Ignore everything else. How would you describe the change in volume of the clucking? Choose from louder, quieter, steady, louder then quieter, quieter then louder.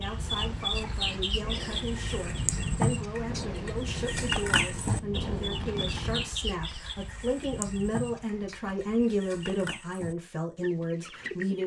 quieter.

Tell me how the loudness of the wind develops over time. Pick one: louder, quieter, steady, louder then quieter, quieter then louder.
louder.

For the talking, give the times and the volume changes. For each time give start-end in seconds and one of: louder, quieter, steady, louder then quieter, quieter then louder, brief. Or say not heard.
0.0-11.6 louder.